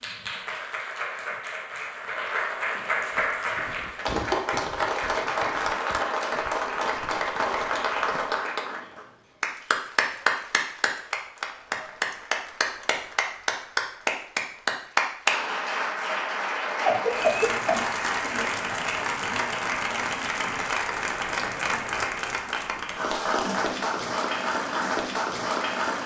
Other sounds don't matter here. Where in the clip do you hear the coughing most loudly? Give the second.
17 s.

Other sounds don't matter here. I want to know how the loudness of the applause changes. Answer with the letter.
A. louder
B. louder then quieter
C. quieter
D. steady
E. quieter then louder
D.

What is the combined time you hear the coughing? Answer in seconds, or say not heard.
2 s.